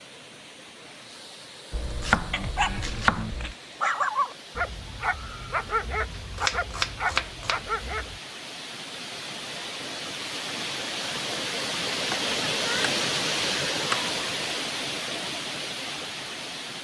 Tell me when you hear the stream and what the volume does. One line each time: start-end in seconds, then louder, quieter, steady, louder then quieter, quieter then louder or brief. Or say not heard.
0.0-16.7 louder.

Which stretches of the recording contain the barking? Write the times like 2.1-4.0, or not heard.
2.3-8.2.